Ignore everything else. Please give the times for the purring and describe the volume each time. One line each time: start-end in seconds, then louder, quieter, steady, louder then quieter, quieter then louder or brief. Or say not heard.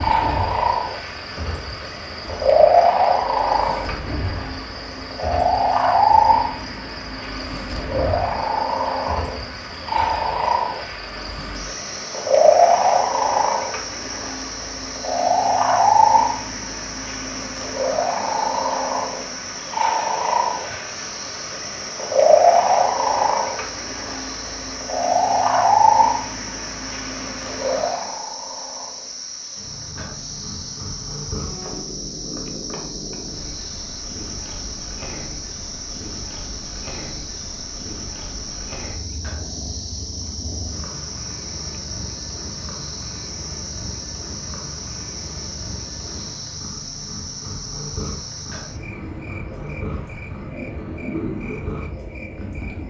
0.0-52.8 quieter.